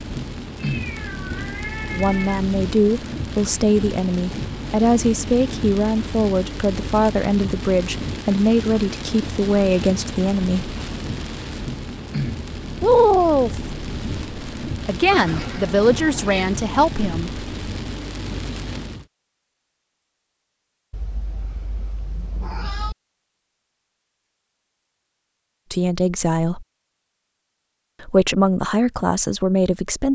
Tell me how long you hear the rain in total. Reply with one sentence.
The rain can be heard for 19 seconds in total.